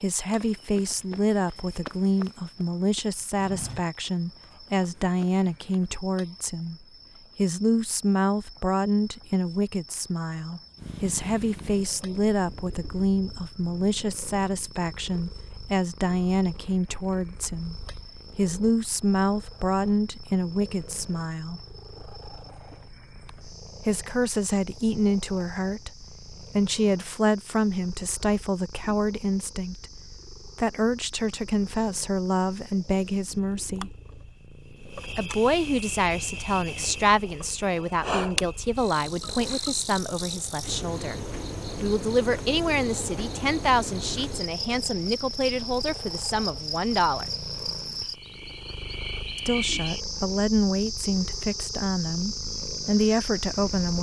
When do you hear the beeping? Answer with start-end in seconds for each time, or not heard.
not heard.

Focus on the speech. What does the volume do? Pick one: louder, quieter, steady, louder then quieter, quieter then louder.
steady.